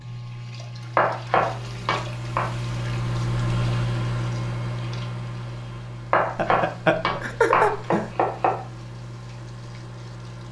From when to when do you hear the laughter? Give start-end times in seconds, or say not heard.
6.3-8.1.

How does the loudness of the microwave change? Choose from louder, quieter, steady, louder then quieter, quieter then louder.
louder then quieter.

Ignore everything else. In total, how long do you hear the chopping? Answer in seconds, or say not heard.
4 s.